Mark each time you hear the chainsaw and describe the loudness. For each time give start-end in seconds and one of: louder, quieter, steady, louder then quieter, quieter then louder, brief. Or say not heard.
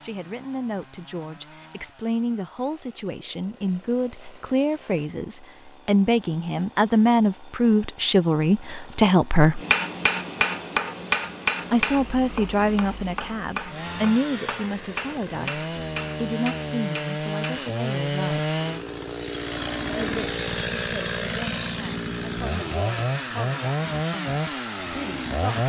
0.0-25.6 louder.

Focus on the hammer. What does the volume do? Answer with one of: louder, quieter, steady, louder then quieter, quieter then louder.
quieter.